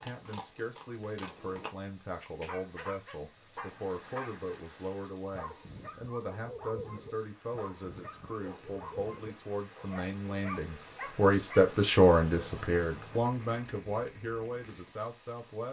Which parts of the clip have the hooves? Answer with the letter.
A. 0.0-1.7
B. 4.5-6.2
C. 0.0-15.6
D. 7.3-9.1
A.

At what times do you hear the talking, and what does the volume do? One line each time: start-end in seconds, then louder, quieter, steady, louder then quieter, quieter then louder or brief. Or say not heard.
0.0-15.6 louder then quieter.